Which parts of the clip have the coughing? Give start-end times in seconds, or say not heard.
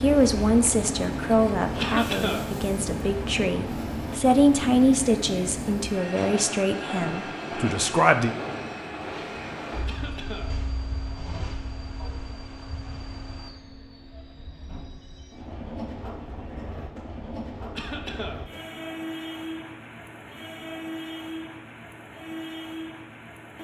1.8-2.5, 9.8-10.6, 17.8-18.4.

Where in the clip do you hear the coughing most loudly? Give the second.
2 s.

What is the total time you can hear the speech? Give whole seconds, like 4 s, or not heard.
8 s.